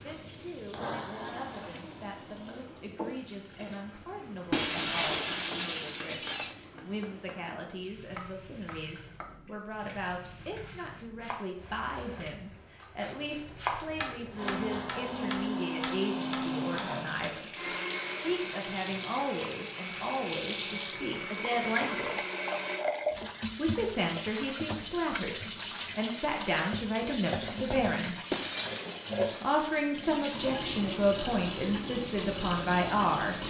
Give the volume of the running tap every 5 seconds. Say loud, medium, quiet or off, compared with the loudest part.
medium, quiet, quiet, medium, loud, loud, loud.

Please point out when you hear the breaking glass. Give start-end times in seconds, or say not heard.
4.5-6.5, 28.3-29.8.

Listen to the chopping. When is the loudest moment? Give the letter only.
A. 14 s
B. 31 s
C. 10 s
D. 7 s
A.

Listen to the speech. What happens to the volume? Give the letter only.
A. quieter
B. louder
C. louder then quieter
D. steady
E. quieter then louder
B.